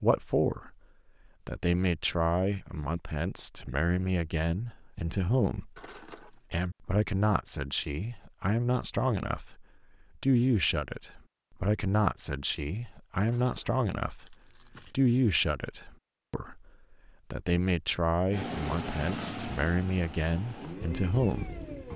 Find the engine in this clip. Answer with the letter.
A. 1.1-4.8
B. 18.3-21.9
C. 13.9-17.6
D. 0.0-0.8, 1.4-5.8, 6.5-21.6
B.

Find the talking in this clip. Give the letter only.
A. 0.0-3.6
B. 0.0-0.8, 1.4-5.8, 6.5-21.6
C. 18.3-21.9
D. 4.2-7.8
B.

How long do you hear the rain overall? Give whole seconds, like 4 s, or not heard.
not heard.